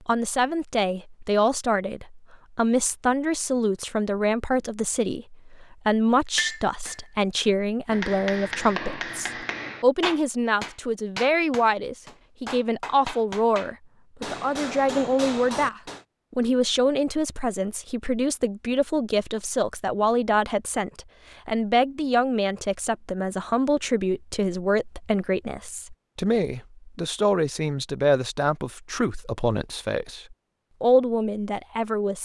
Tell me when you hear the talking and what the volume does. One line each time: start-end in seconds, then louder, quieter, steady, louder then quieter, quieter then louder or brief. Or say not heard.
0.1-32.2 steady.